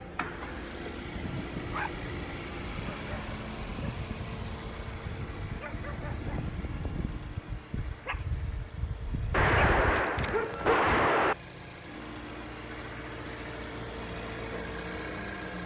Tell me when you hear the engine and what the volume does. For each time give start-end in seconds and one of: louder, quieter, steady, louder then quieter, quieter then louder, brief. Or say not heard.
0.0-15.6 quieter then louder.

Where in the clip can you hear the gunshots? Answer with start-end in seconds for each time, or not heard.
9.3-11.3.